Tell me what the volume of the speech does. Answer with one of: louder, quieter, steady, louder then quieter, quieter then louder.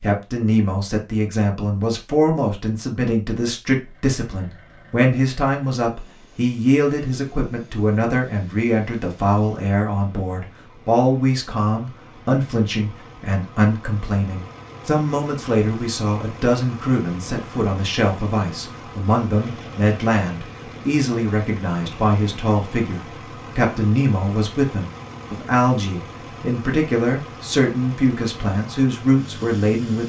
steady.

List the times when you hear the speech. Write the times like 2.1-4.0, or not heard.
0.0-30.0.